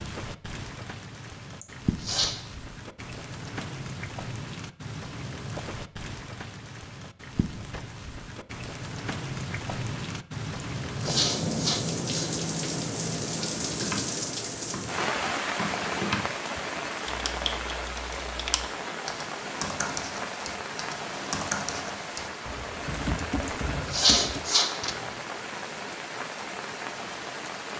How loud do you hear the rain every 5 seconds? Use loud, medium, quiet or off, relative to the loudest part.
medium, medium, loud, loud, medium, medium.